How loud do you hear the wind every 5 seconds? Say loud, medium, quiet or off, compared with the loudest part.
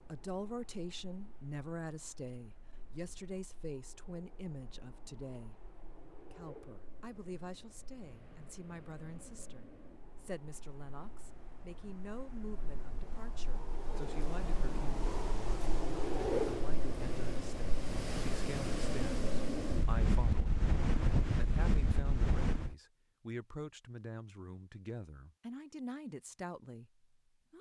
quiet, quiet, quiet, loud, loud, off.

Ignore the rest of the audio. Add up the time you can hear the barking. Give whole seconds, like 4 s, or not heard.
not heard.